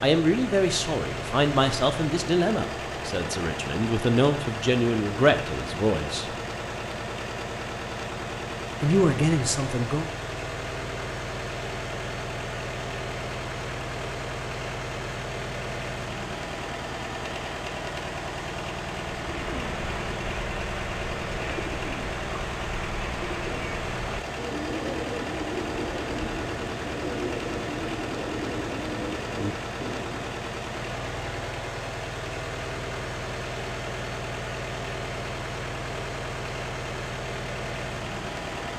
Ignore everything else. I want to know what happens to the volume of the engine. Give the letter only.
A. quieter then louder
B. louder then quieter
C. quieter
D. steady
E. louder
D.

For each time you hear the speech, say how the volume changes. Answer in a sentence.
You can hear the speech from 0.0 to 6.3 s, getting quieter then louder; and briefly from 8.8 to 10.1 s.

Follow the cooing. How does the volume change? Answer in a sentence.
The volume of the cooing stays about the same.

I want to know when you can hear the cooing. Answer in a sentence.
The cooing can be heard from 19.1 to 30.4 s.